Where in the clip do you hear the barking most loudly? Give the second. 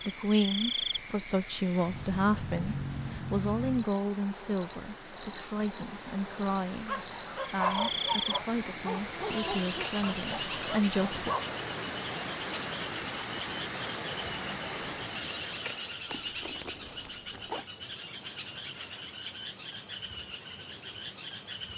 8 s.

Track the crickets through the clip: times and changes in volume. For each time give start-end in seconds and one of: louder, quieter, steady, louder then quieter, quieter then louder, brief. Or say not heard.
0.0-21.7 steady.